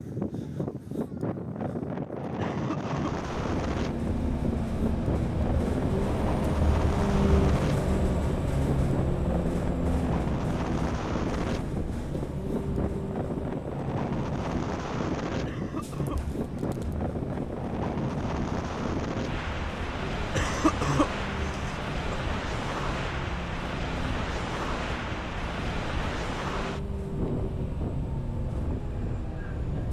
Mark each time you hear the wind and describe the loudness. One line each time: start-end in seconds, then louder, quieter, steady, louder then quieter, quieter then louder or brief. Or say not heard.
0.0-29.8 steady.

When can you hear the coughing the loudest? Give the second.
21 s.